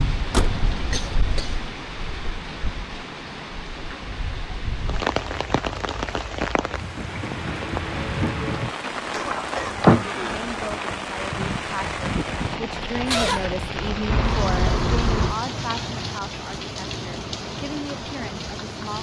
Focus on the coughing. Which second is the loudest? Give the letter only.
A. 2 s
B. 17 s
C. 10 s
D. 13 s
D.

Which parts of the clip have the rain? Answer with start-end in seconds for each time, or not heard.
0.0-18.9.